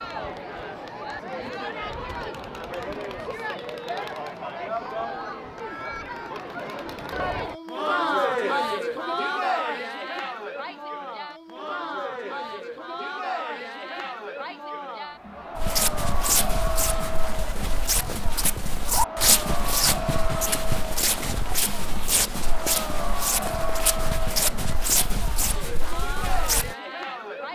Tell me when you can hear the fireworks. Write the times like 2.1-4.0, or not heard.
not heard.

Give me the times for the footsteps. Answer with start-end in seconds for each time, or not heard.
15.6-26.8.